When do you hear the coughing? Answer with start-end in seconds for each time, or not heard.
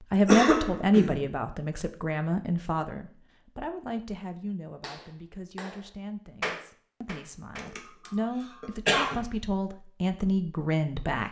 0.2-1.3, 7.5-9.2.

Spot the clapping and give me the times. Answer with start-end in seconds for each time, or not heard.
4.8-7.8.